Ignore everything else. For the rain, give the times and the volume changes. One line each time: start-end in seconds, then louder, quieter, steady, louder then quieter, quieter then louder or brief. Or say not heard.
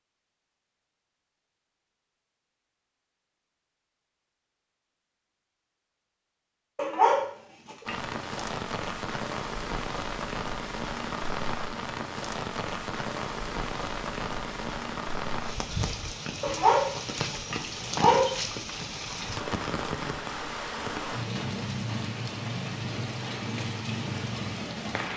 7.8-25.1 steady.